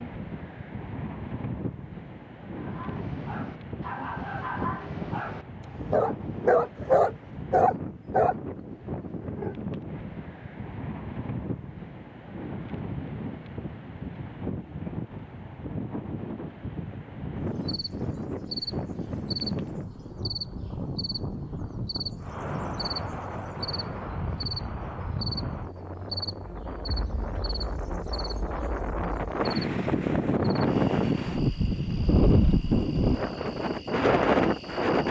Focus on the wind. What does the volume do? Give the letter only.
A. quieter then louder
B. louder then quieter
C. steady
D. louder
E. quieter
D.